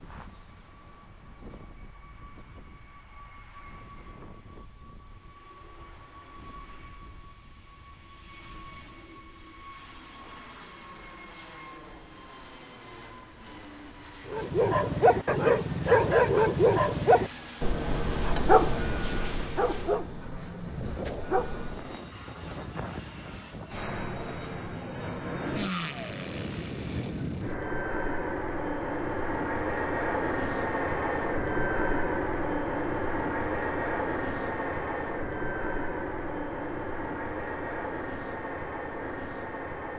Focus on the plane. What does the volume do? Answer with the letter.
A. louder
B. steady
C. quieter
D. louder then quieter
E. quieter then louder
A.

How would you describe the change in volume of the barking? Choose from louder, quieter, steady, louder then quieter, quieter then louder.
quieter.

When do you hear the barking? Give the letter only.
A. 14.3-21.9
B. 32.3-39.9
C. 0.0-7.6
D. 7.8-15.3
A.